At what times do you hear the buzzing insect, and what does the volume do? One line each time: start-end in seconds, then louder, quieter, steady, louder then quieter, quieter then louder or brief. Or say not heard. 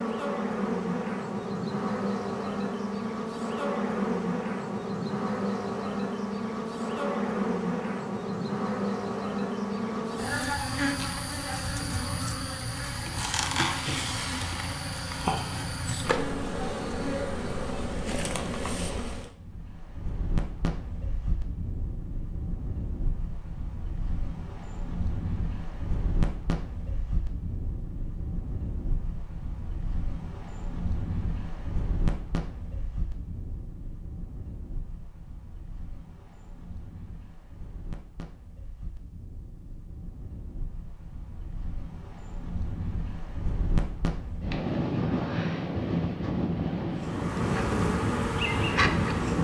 0.0-19.3 steady
47.0-49.4 brief.